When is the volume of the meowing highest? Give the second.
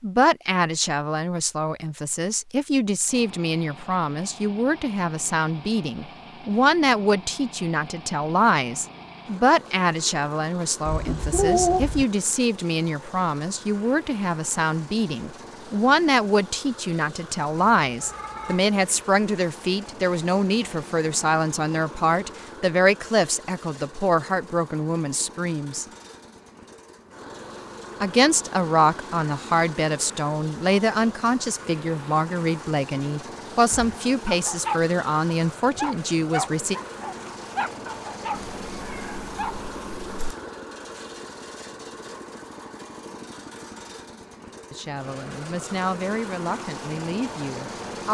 12 s.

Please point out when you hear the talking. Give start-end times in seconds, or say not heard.
0.0-25.9, 28.0-36.8, 44.7-48.1.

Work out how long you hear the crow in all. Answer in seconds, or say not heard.
not heard.